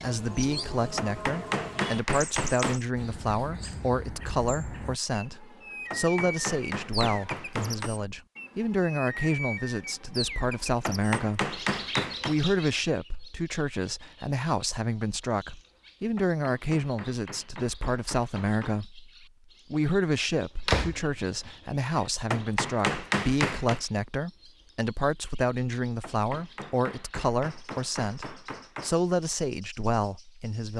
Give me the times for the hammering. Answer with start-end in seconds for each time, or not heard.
0.9-2.8, 5.9-7.9, 10.8-12.3, 16.1-18.9, 22.3-23.8, 26.0-28.9.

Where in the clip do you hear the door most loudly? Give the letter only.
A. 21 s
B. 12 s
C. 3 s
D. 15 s
A.